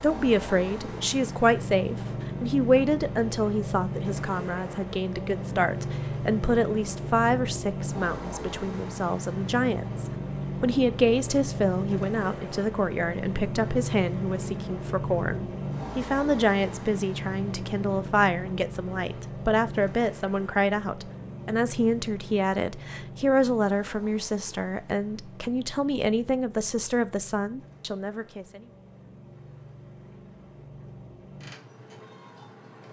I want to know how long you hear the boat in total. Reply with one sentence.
The boat can be heard for 33 seconds in total.